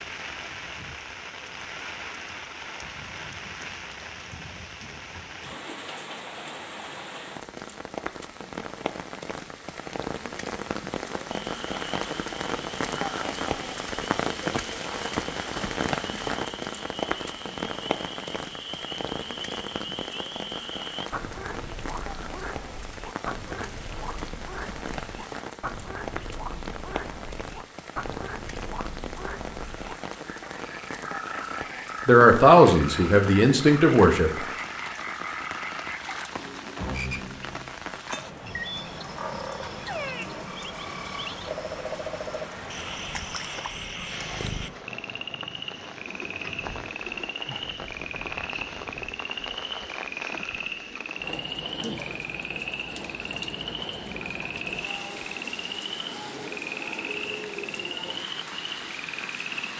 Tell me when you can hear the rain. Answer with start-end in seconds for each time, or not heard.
0.0-59.7.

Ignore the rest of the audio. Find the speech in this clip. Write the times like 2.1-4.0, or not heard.
32.0-34.3.